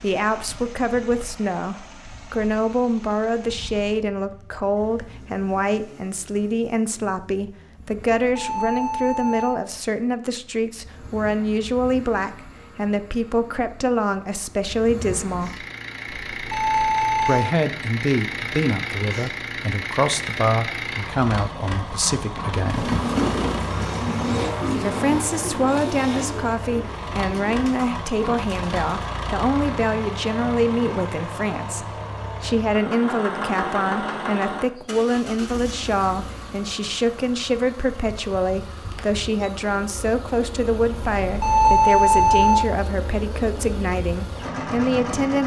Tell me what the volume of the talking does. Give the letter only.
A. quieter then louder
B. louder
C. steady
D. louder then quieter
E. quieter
C.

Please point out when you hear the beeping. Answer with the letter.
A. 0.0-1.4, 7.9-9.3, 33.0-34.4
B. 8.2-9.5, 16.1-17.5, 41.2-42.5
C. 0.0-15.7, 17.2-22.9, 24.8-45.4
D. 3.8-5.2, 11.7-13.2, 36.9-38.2
B.